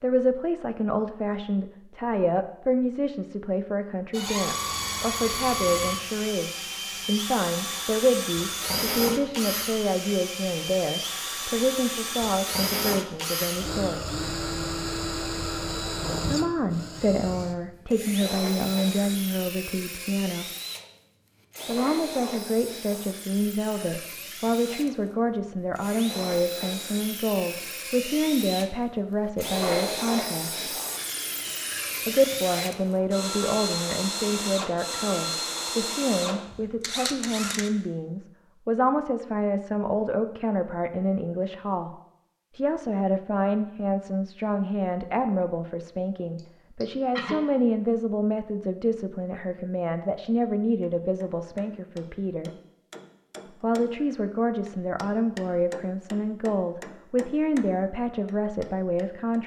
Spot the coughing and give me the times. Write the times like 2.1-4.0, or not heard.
46.4-47.5.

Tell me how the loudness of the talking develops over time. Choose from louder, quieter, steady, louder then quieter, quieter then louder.
steady.